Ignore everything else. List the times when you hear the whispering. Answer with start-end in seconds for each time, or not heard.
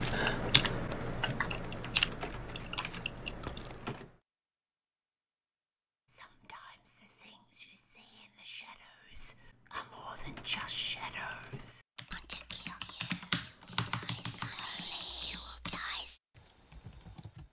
6.0-16.2.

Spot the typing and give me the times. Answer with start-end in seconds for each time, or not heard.
0.0-4.1, 9.8-17.4.